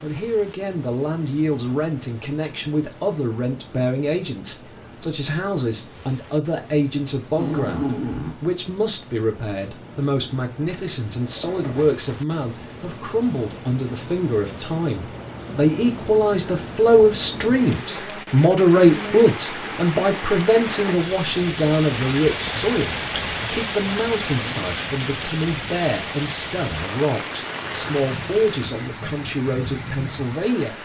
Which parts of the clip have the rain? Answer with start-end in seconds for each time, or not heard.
0.0-30.8.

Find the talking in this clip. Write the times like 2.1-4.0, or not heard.
0.0-30.8.